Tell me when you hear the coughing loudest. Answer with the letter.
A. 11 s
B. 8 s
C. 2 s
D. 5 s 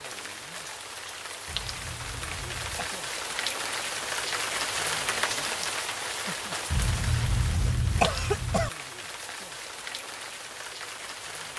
B.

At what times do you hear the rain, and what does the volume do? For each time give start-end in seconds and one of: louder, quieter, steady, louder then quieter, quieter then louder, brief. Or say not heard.
0.0-11.5 louder then quieter.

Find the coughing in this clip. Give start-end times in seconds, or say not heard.
1.4-3.0, 6.7-8.7.